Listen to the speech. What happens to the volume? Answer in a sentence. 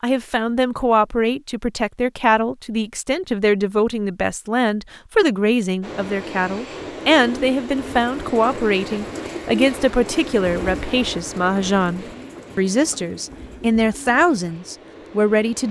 The volume of the speech stays about the same.